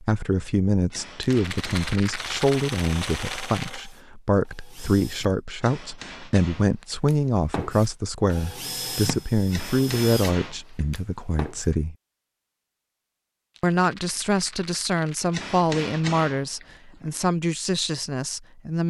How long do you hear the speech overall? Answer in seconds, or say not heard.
17 s.